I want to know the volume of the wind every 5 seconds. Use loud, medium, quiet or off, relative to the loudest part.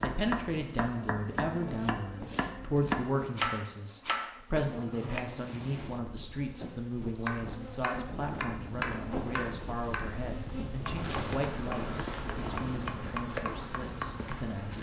off, loud, loud.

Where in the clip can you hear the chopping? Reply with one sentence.
The chopping can be heard from 0.0 to 5.2 s and from 7.2 to 14.4 s.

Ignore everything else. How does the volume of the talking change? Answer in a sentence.
The volume of the talking goes down.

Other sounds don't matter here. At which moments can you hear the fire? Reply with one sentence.
You can't hear the fire here.